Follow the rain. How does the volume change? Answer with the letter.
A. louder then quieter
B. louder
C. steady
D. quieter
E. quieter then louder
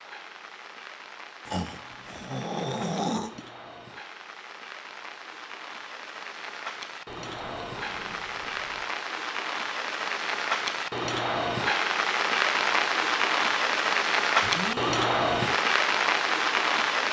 B.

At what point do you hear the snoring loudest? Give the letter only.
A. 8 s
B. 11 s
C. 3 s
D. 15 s
C.